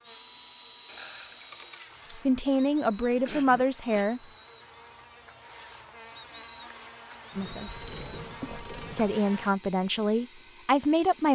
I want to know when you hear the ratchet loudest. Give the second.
1 s.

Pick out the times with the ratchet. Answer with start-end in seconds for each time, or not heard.
0.8-2.0, 7.3-9.2.